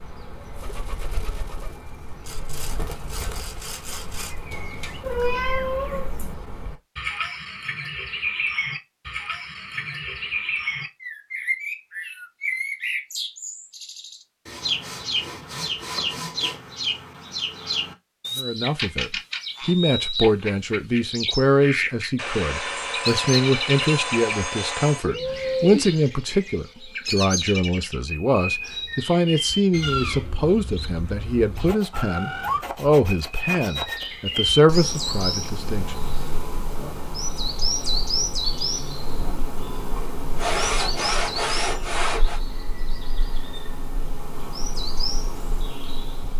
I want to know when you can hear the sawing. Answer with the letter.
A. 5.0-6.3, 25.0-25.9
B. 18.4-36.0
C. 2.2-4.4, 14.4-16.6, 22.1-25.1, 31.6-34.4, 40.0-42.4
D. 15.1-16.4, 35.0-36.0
C.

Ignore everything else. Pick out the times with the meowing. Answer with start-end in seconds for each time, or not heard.
5.0-6.3, 25.0-25.9.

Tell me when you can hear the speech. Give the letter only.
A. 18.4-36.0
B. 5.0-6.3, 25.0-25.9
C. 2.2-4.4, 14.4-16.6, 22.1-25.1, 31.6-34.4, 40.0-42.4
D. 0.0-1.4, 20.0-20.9
A.